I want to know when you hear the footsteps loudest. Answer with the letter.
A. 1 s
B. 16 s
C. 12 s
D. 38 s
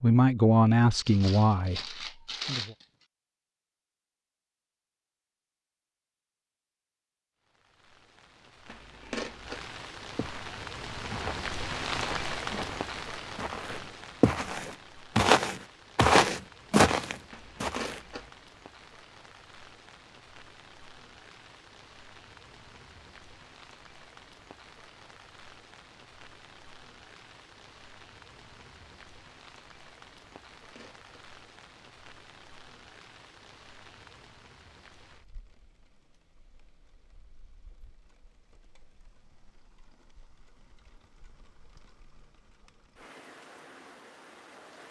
B.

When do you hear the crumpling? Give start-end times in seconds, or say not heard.
0.9-2.9.